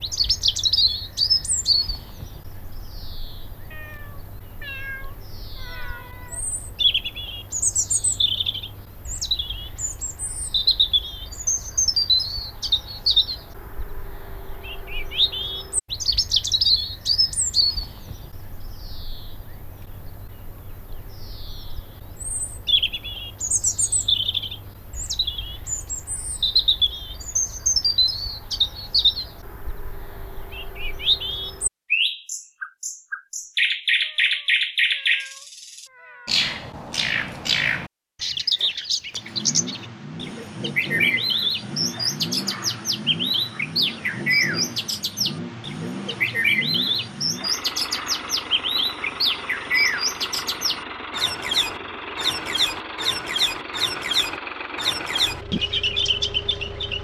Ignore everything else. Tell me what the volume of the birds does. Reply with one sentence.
The volume of the birds stays about the same.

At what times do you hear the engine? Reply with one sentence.
The engine can be heard from 39.1 to 57.0 s.